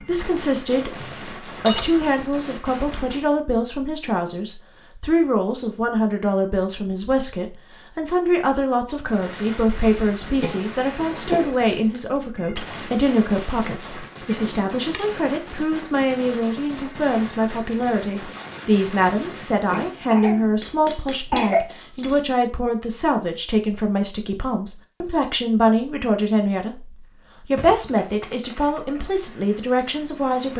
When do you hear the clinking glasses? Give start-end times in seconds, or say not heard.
1.0-2.0, 14.3-15.1, 20.6-22.2.